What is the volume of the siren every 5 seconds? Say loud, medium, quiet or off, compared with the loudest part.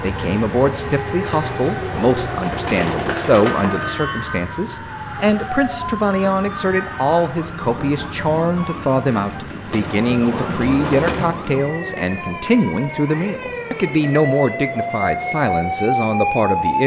medium, medium, medium, loud.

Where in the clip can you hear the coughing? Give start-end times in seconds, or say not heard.
not heard.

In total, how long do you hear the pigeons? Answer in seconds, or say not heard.
4 s.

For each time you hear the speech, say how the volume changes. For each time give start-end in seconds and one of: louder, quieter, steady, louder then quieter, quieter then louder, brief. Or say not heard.
0.0-16.8 steady.